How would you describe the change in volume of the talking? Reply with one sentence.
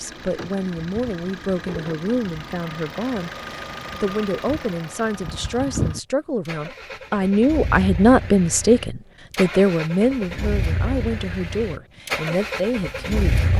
The volume of the talking goes up, then down.